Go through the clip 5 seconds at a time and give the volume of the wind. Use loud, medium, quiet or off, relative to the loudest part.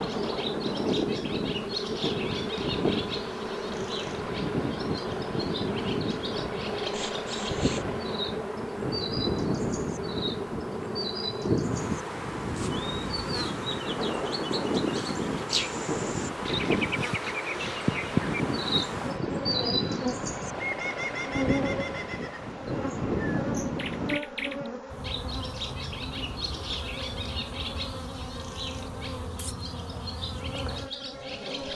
loud, loud, loud, loud, loud, off, off.